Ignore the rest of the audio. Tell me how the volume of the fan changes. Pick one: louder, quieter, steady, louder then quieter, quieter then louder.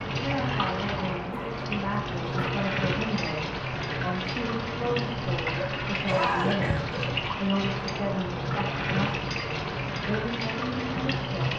steady.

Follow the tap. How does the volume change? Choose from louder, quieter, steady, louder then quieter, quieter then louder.
steady.